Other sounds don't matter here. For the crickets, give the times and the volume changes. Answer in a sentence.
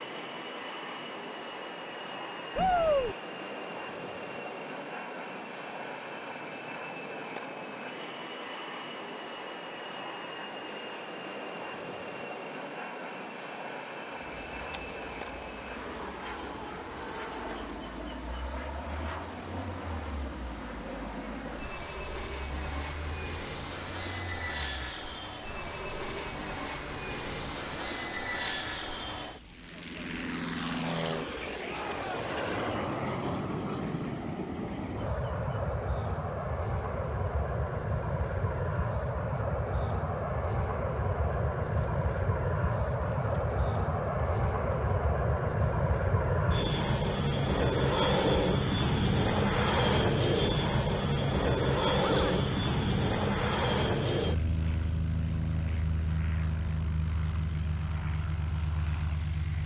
The crickets can be heard from 14.1 to 59.6 s, getting quieter.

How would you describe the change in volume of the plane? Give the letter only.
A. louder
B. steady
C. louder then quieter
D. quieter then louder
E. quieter
A.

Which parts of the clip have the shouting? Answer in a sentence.
You can hear the shouting from 2.5 to 3.1 s, from 31.6 to 32.2 s and from 52.0 to 52.5 s.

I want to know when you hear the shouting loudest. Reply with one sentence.
The loudest moment of the shouting is at 3 seconds.